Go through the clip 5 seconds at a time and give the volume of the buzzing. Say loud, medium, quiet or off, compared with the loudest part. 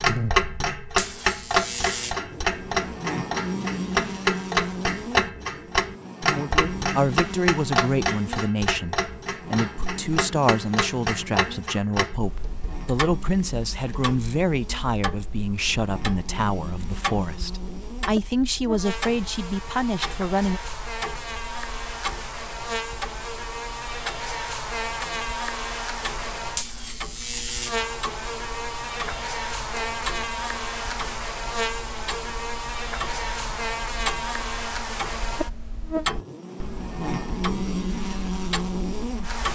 loud, medium, medium, medium, loud, loud, loud, loud.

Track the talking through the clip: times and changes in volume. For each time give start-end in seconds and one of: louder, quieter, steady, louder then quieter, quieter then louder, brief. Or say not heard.
6.3-20.6 steady.